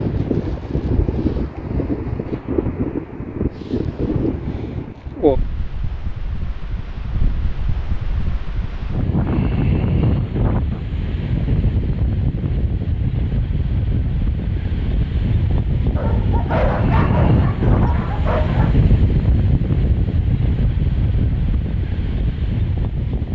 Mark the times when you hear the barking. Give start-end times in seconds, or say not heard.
15.9-18.9.